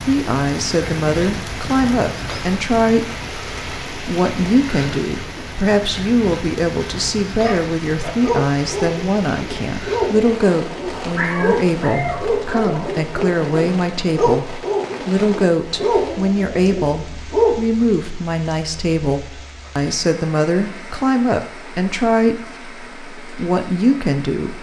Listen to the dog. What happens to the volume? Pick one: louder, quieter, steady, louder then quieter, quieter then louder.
steady.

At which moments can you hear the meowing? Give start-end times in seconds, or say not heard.
11.2-12.9.